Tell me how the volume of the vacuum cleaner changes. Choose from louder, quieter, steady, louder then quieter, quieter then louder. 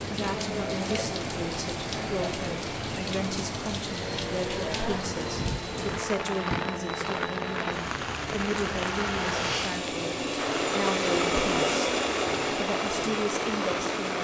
louder.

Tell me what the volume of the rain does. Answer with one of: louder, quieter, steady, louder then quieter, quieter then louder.
steady.